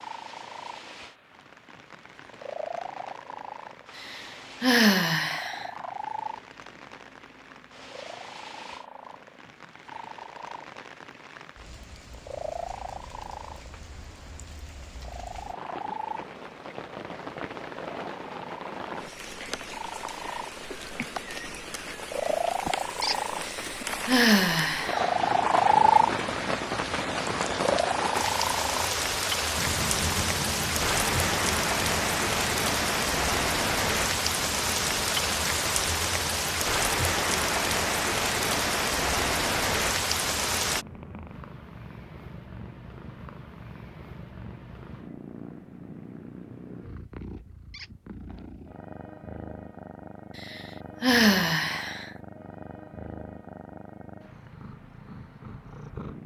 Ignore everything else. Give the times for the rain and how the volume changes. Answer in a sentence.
You can hear the rain from 0.0 to 40.9 s, getting louder.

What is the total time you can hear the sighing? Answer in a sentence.
The sighing can be heard for 5 seconds in total.